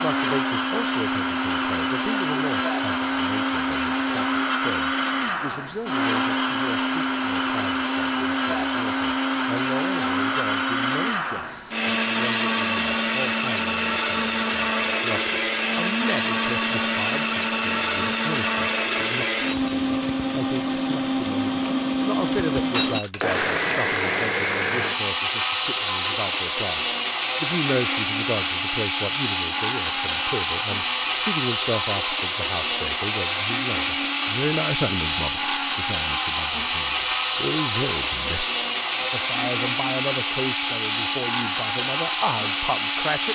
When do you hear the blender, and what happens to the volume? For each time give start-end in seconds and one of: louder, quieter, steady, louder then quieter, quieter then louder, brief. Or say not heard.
0.0-43.2 steady.